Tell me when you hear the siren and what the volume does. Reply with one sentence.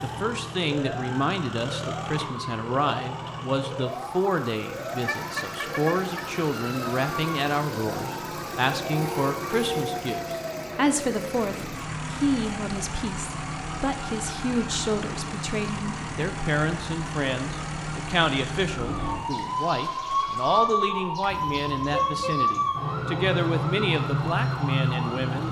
The siren can be heard from 0.0 to 25.4 s, getting louder.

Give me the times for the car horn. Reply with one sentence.
You can hear the car horn from 5.0 to 6.2 s, from 8.9 to 10.0 s and from 21.2 to 22.4 s.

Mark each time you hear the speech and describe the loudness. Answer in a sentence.
You can hear the speech from 0.0 to 25.4 s, at a steady volume.